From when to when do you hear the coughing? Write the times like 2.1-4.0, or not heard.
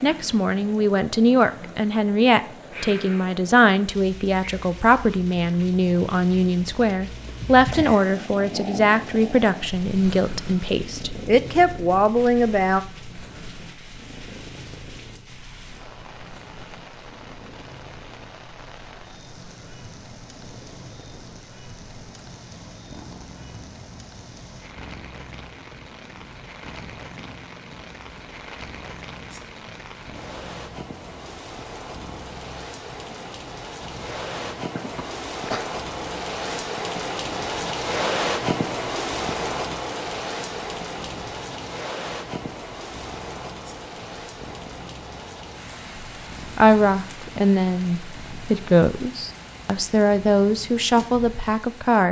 34.8-35.6.